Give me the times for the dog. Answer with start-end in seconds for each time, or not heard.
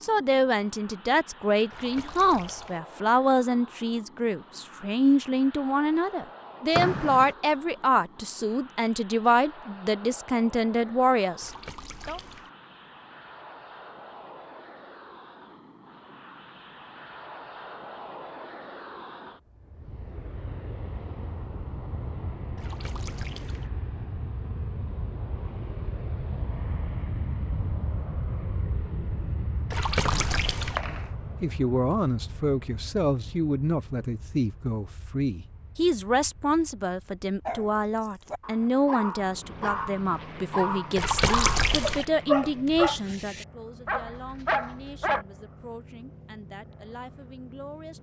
37.5-45.2.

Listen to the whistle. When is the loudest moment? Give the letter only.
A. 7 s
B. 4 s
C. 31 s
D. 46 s
A.